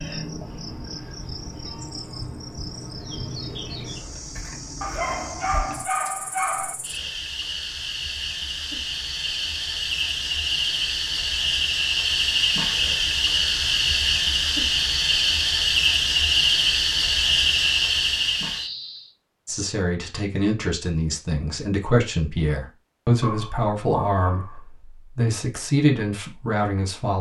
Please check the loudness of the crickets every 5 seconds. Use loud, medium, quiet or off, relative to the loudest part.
quiet, medium, loud, loud, off, off.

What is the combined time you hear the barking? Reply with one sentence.
The barking can be heard for 3 seconds in total.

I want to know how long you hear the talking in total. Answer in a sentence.
The talking can be heard for 8 seconds in total.